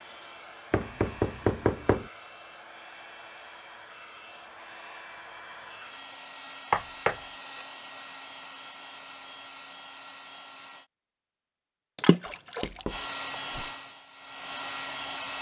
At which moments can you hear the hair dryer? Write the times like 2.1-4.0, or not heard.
0.0-10.9, 12.8-15.3.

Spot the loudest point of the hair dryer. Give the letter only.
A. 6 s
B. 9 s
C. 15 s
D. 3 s
C.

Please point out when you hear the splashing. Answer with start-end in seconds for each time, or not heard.
11.9-13.1.